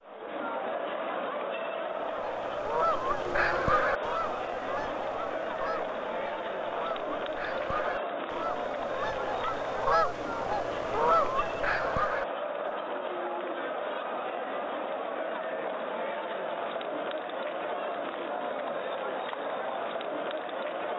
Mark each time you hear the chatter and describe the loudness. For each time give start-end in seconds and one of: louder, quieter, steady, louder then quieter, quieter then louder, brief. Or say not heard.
0.0-20.9 steady.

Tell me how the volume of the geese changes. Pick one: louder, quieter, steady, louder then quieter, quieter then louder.
quieter then louder.